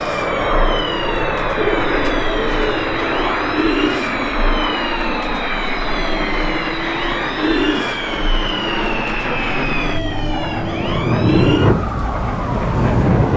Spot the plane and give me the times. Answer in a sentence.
The plane can be heard from 0.0 to 13.3 s.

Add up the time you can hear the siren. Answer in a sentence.
The siren can be heard for 13 seconds in total.